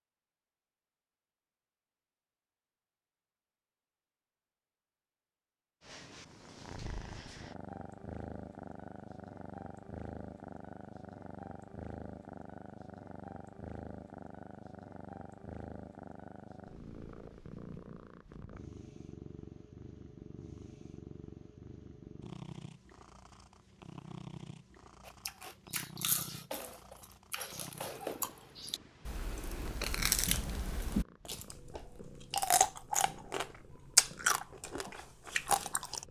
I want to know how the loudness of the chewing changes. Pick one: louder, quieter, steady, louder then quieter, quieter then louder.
louder.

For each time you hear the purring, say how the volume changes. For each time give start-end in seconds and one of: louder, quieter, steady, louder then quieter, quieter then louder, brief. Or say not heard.
5.8-36.0 quieter.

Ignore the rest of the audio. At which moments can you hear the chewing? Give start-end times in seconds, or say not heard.
25.1-36.0.